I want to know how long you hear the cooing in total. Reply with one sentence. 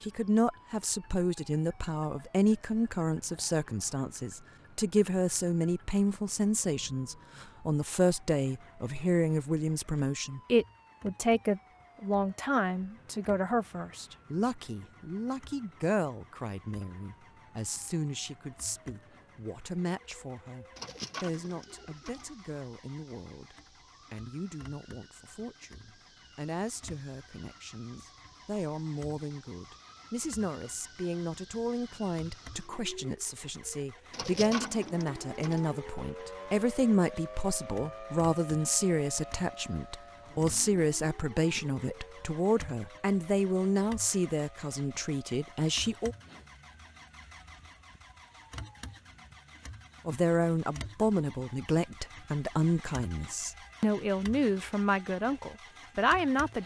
You can hear the cooing for 3 seconds altogether.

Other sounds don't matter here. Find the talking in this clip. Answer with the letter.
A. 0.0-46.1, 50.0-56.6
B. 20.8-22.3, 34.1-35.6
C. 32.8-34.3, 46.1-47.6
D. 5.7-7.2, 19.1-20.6
A.